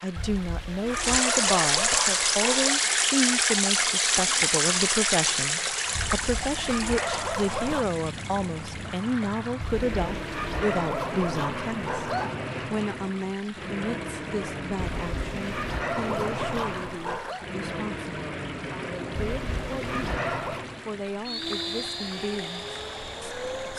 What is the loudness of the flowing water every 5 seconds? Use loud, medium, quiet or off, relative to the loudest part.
loud, medium, quiet, quiet, quiet.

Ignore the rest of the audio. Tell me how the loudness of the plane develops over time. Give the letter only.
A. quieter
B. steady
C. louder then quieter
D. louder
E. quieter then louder
D.